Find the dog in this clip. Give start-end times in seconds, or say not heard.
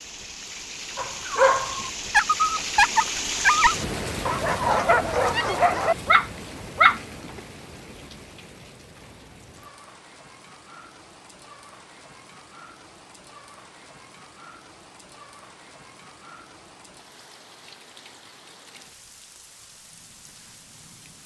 0.9-7.4.